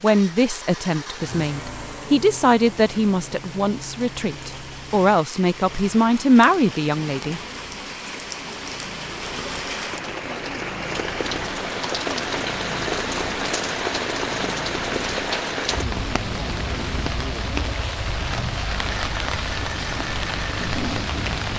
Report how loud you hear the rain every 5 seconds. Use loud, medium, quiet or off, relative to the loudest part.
quiet, medium, loud, loud, loud.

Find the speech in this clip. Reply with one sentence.
The speech can be heard from 0.0 to 7.4 s.